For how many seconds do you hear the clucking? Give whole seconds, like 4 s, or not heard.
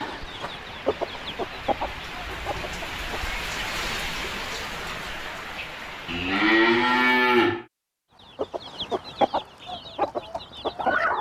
6 s.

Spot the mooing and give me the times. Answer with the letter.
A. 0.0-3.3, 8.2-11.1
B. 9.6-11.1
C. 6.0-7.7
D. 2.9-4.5
C.